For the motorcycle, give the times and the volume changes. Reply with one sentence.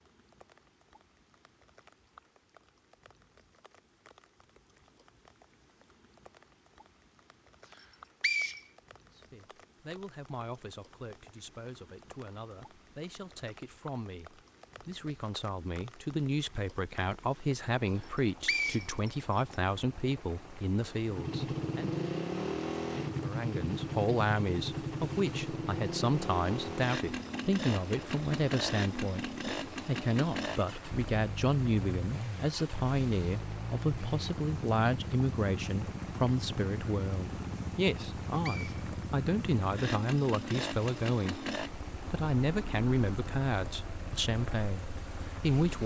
You can hear the motorcycle from 21.1 to 45.8 s, getting quieter.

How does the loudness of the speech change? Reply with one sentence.
The loudness of the speech goes up.